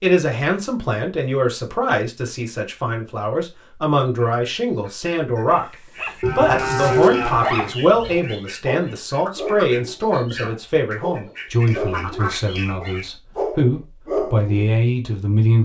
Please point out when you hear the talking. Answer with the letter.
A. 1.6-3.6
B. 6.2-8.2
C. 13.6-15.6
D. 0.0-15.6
D.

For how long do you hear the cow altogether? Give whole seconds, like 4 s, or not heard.
2 s.